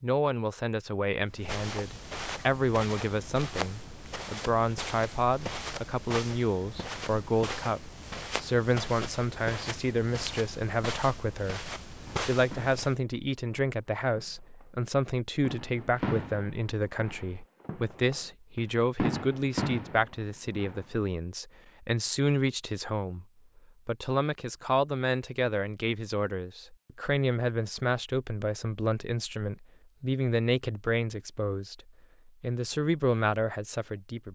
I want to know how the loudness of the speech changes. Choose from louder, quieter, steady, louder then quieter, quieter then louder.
steady.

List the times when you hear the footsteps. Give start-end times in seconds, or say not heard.
1.3-12.9.